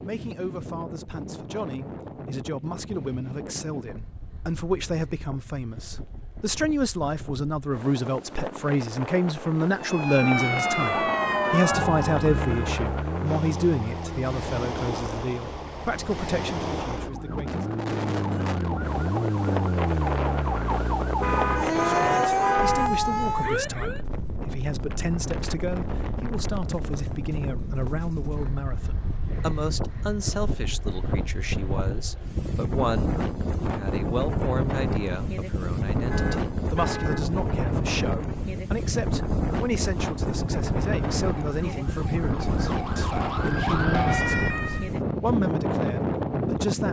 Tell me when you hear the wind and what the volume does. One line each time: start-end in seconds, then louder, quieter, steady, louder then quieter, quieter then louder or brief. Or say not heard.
0.0-46.8 louder.